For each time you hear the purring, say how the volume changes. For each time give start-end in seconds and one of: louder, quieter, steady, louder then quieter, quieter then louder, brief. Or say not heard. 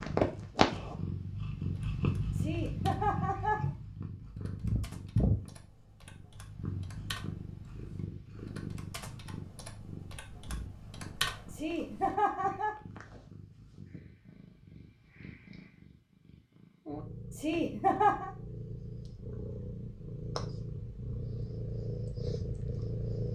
0.0-23.3 quieter then louder.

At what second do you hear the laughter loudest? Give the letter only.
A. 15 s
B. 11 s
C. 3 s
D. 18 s
D.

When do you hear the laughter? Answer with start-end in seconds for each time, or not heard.
2.4-3.7, 11.5-12.8, 17.3-18.3.